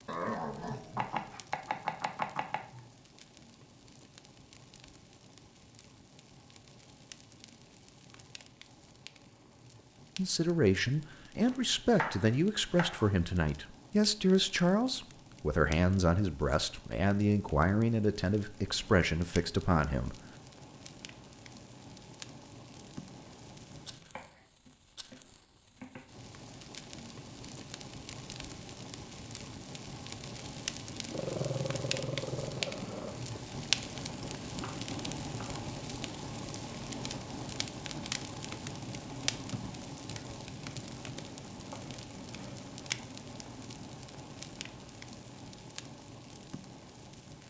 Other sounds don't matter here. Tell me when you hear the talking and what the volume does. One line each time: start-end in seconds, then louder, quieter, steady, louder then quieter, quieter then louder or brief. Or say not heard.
10.2-20.1 steady.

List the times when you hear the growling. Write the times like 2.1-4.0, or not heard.
0.1-1.4, 31.1-33.1.